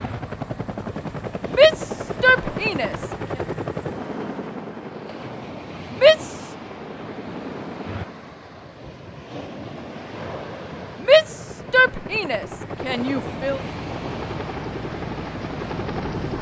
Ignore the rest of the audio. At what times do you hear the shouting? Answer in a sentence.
The shouting can be heard from 1.6 to 3.0 s, from 5.9 to 6.5 s and from 11.0 to 13.6 s.